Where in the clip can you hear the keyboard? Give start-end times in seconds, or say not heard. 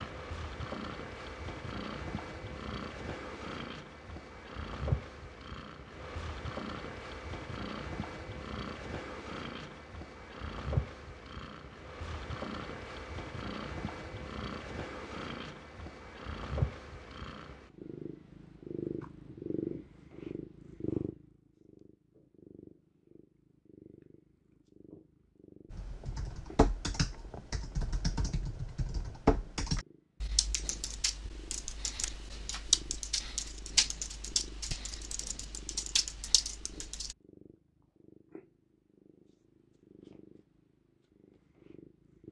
25.7-37.1.